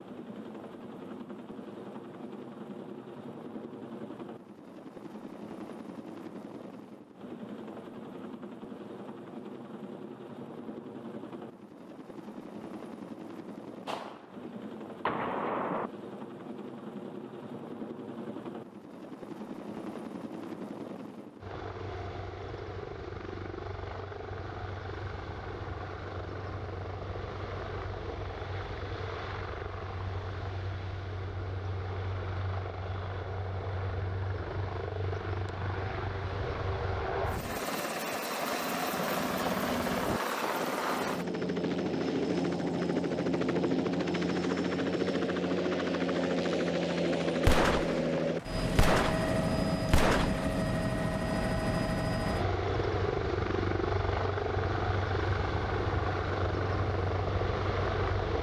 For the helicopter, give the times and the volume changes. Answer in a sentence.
You can hear the helicopter from 0.0 to 58.3 s, getting louder.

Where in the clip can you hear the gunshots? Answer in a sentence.
The gunshots can be heard from 13.8 to 14.3 s, from 15.1 to 15.9 s and from 47.4 to 50.5 s.